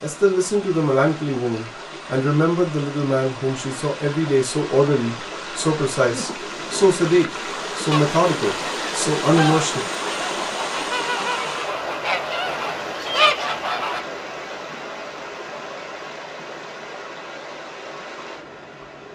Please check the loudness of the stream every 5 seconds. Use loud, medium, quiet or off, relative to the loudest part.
medium, loud, loud, medium.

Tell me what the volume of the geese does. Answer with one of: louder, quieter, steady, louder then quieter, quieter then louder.
louder.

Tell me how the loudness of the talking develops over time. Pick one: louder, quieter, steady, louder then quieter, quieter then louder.
steady.